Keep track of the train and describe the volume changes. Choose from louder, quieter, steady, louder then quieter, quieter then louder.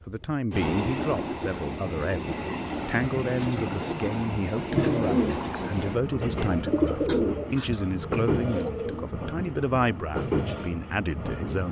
steady.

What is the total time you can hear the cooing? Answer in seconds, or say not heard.
6 s.